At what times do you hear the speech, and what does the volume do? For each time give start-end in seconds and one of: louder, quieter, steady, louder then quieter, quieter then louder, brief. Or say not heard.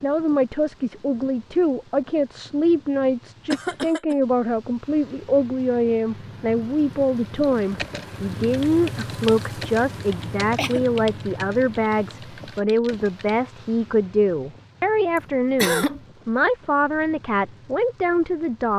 0.0-18.7 steady.